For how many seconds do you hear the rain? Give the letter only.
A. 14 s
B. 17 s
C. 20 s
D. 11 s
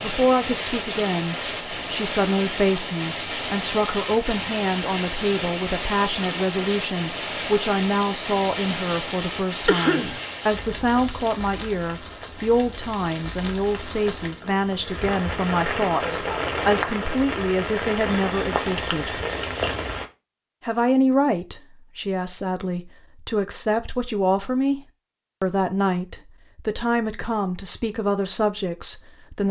C.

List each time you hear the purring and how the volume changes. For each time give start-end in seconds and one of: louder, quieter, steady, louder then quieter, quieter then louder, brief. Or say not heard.
not heard.